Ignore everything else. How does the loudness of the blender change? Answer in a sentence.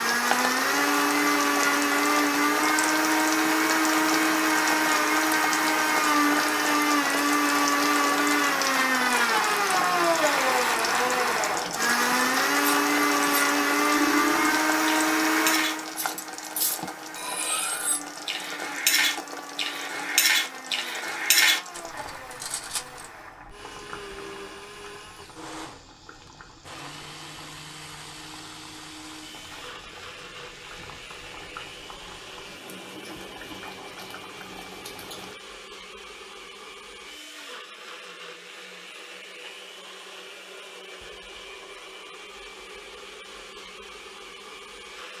The loudness of the blender goes down.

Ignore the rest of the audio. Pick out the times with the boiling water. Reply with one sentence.
You can hear the boiling water from 0.0 to 35.4 s.